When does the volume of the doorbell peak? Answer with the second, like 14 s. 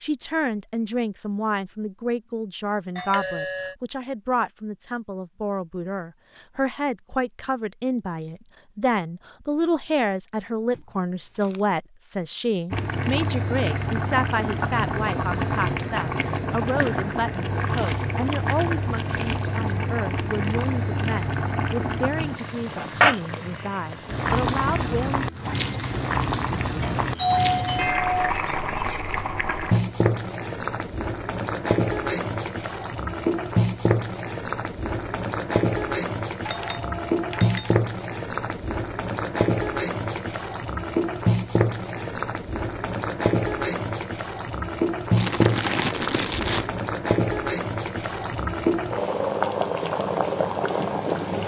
27 s.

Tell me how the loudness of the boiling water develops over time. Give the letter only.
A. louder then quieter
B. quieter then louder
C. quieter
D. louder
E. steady
E.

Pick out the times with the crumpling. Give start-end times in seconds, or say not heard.
10.7-11.6, 17.7-19.8, 45.1-46.7.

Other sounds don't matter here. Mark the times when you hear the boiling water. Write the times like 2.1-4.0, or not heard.
12.7-51.4.